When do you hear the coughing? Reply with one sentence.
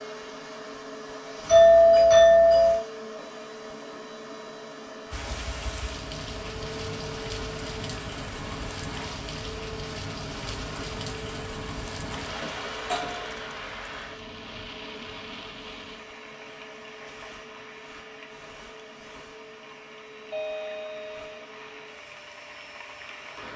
You can't hear the coughing here.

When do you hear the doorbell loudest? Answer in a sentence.
The volume of the doorbell peaks at 2 seconds.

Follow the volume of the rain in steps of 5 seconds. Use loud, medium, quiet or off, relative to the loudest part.
off, loud, loud, medium, medium.